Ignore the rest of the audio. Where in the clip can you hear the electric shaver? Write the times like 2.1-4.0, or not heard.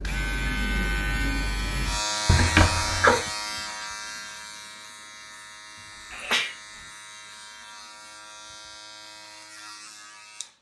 0.0-10.5.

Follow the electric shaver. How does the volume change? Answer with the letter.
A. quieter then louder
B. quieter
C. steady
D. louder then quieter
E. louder
B.